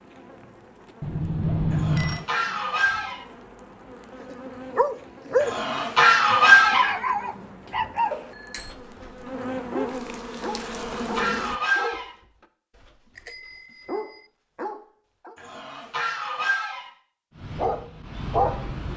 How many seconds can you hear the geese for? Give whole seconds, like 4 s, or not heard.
6 s.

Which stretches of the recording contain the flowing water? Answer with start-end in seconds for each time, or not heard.
not heard.